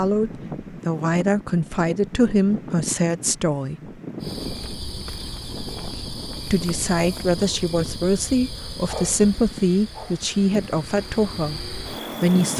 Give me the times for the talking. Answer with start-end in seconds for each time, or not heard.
0.0-3.8, 6.3-12.5.